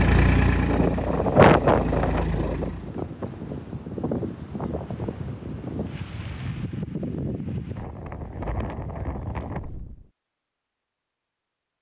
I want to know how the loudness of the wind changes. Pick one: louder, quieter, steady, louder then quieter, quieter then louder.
quieter.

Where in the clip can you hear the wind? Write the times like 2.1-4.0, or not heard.
0.0-10.1.